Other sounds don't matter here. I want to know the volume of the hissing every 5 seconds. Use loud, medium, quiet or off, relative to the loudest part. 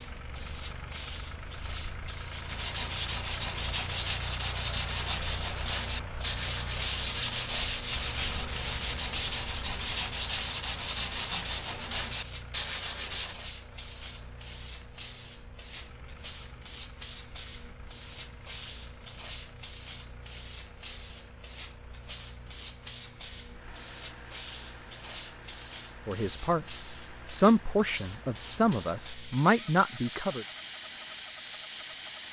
medium, loud, medium, medium, medium, medium, medium.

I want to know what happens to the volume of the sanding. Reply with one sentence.
The volume of the sanding stays about the same.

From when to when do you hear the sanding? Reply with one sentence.
The sanding can be heard from 2.5 to 13.3 s.